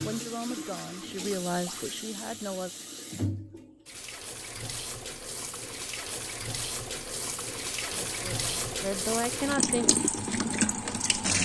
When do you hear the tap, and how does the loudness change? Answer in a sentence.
The tap can be heard from 0.0 to 11.3 s, getting louder.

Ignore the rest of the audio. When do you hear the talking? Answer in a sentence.
You can hear the talking from 0.0 to 2.7 s and from 8.1 to 9.9 s.